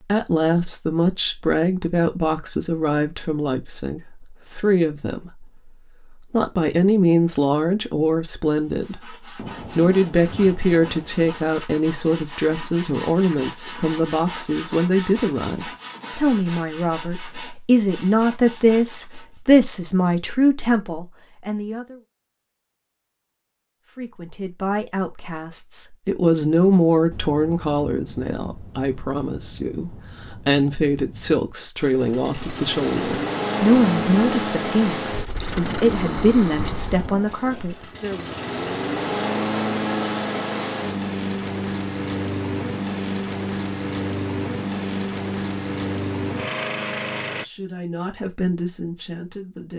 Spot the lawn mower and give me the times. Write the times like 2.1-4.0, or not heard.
31.8-47.5.